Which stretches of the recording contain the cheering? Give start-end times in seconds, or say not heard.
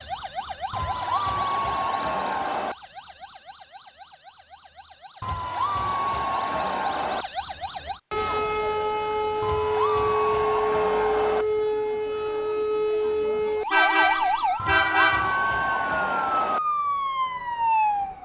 0.7-2.8, 5.2-7.2, 9.4-11.4, 14.6-16.6.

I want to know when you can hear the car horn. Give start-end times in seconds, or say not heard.
13.7-15.4.